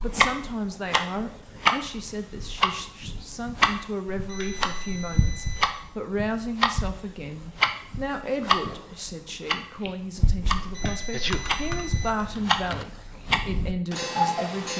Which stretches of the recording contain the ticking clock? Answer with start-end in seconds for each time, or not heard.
0.0-14.7.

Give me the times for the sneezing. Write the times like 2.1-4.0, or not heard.
11.1-11.5.